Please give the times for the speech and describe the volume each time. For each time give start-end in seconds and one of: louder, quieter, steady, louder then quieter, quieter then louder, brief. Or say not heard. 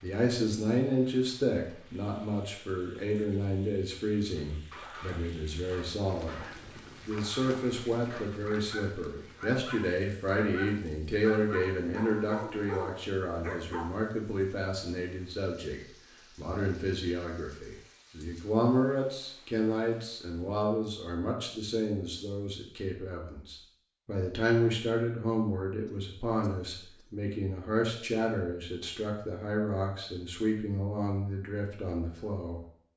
0.0-32.9 steady.